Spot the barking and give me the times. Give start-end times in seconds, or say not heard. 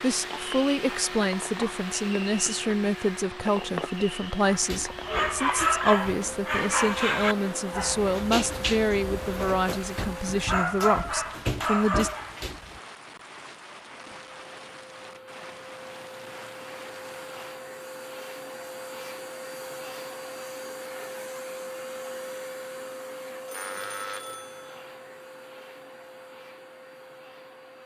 4.4-12.8.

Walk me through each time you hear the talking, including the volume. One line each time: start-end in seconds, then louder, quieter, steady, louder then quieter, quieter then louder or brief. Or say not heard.
0.0-12.1 steady.